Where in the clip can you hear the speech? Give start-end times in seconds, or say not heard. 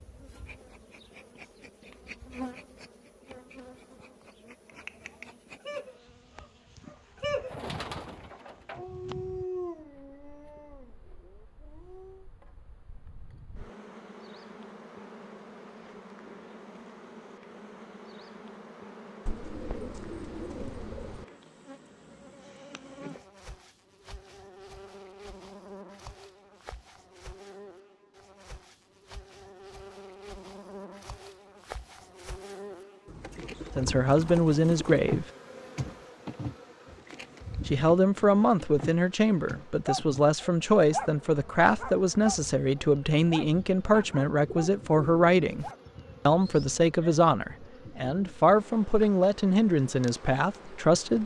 33.8-35.2, 37.6-45.6, 46.2-51.2.